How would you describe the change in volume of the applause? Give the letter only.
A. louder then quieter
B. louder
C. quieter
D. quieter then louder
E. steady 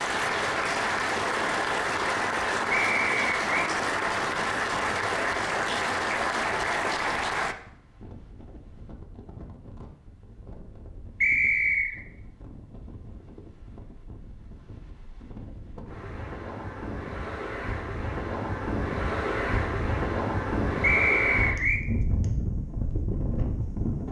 E.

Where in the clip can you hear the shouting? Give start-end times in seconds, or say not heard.
not heard.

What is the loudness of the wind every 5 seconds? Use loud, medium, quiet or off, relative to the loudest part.
quiet, quiet, quiet, loud, loud.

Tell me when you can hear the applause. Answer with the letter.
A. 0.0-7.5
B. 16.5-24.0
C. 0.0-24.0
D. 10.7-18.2
A.